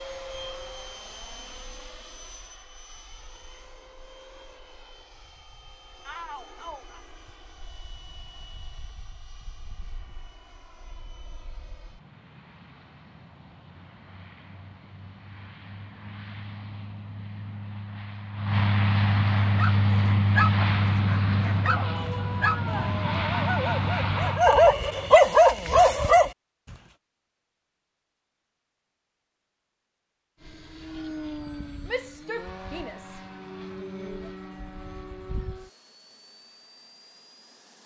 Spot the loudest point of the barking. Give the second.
25 s.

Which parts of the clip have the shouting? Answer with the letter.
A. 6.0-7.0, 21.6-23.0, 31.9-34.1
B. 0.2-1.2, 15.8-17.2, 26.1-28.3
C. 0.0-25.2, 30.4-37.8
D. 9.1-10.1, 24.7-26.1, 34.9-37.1
A.